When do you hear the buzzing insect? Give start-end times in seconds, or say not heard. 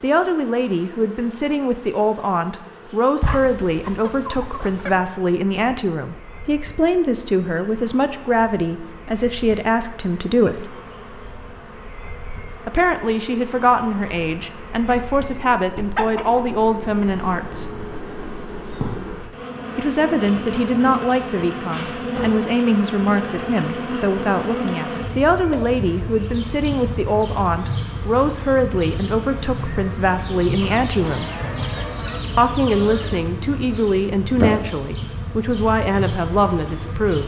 0.0-37.2.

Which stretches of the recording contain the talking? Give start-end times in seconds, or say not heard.
0.0-10.7, 12.7-17.8, 19.8-31.3, 32.4-37.2.